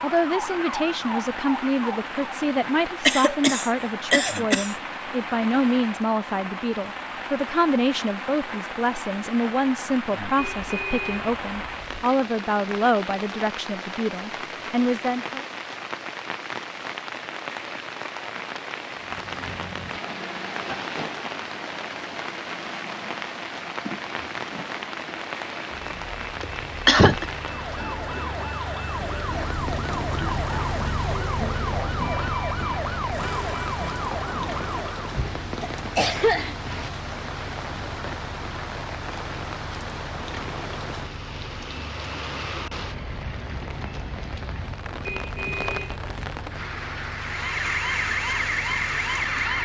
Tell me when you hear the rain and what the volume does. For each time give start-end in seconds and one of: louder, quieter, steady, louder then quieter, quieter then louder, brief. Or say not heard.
0.0-49.6 steady.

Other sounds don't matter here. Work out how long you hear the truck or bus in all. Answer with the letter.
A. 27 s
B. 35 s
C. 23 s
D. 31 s
D.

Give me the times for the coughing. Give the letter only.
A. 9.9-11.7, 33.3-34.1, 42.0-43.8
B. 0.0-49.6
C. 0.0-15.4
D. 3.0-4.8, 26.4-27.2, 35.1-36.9
D.